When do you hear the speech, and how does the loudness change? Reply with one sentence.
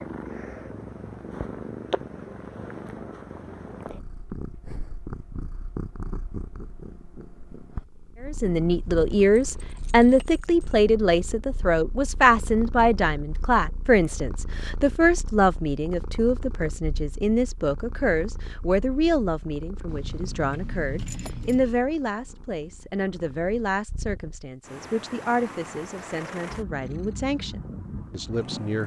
You can hear the speech from 8.2 to 28.8 s, getting quieter.